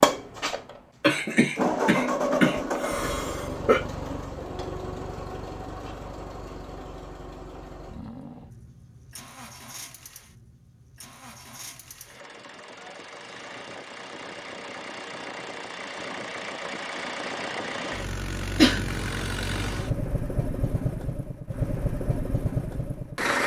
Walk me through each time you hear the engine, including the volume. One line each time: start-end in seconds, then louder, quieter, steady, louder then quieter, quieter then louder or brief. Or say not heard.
0.0-23.4 quieter then louder.